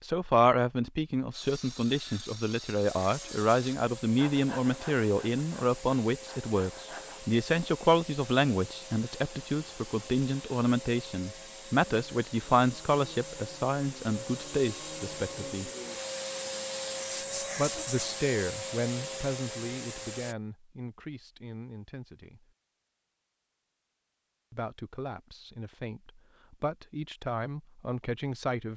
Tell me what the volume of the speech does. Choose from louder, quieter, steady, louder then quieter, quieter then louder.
quieter.